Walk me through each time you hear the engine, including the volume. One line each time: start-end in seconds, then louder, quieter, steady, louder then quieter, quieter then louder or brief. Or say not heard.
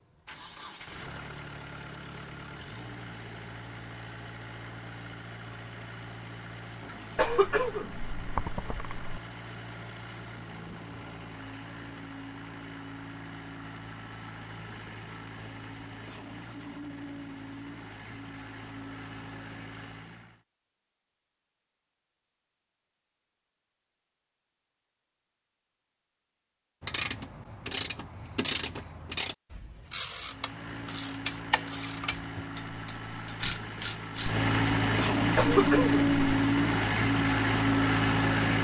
0.0-20.4 steady
30.1-38.6 louder.